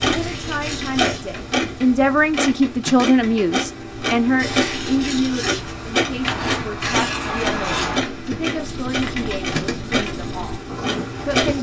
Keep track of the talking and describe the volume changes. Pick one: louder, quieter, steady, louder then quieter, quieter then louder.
quieter.